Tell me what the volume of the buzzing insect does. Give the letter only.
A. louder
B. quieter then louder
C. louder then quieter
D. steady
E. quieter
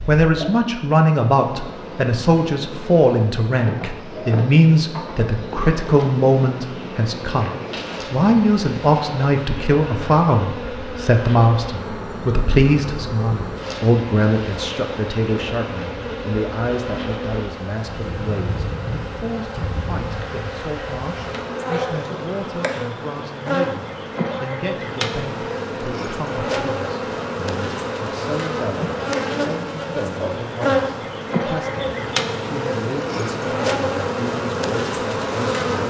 A.